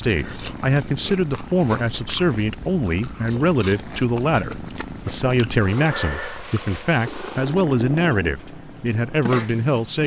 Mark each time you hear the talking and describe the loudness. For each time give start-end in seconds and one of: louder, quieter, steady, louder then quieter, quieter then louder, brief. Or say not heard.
0.0-10.0 steady.